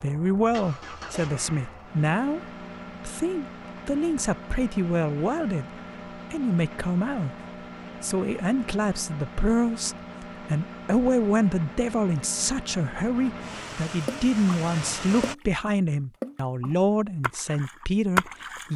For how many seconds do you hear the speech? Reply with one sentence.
You can hear the speech for 17 seconds altogether.